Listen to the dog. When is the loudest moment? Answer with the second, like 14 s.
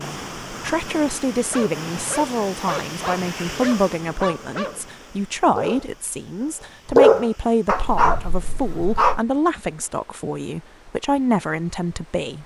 7 s.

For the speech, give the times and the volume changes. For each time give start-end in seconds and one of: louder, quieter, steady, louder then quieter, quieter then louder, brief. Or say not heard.
0.0-12.4 steady.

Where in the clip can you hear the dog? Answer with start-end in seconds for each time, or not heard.
1.4-9.2.